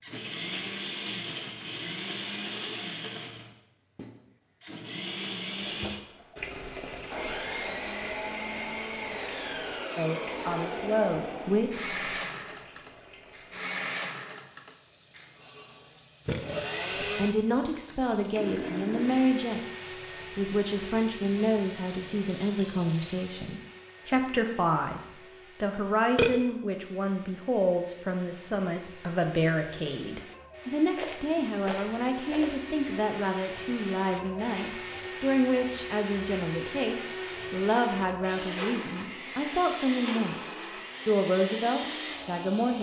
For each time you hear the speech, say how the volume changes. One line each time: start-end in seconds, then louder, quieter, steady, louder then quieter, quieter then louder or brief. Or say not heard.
9.9-12.0 brief
17.0-25.0 steady
25.6-42.7 steady.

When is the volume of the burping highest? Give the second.
26 s.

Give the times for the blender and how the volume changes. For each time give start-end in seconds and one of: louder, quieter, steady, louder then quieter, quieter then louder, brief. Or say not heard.
0.0-42.7 quieter then louder.